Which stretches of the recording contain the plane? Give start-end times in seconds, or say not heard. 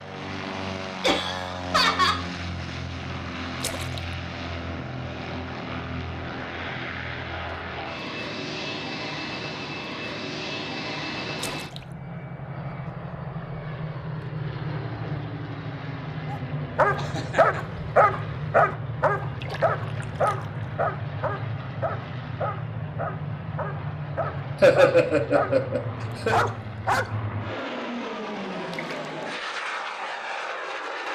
0.0-31.1.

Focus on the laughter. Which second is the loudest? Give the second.
25 s.